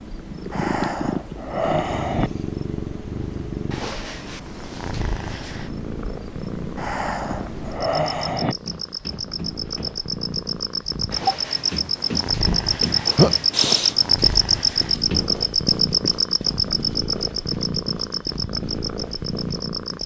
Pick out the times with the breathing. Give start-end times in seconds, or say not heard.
0.5-2.3, 6.8-8.6, 13.5-13.9.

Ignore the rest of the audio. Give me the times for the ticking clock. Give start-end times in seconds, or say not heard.
not heard.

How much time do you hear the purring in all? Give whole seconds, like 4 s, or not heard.
20 s.